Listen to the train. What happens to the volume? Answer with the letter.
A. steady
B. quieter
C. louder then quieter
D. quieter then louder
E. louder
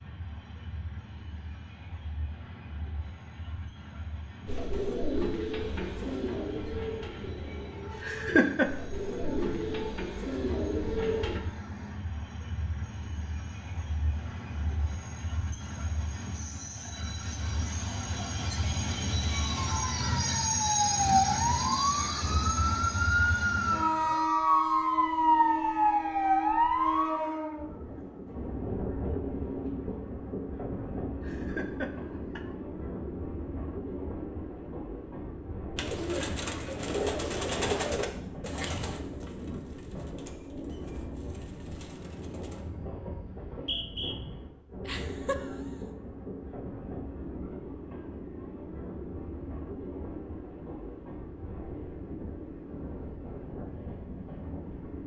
C.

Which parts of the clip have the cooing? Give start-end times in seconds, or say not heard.
4.5-11.4, 35.8-42.7.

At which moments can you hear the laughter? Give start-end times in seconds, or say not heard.
8.0-8.7, 31.2-32.5, 44.9-45.5.